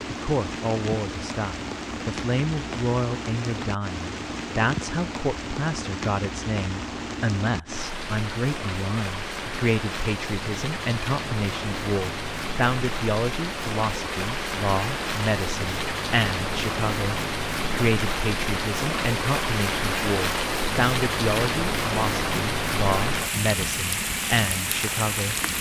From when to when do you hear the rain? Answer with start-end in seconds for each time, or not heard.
0.0-25.5.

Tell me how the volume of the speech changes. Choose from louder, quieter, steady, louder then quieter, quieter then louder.
steady.